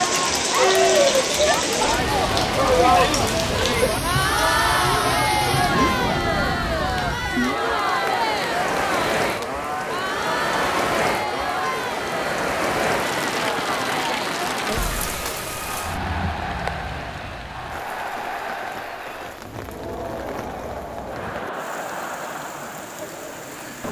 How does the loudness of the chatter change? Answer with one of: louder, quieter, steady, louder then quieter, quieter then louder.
quieter.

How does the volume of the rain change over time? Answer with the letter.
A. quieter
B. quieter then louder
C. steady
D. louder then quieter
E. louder
A.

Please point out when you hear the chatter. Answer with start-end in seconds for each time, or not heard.
0.0-23.8.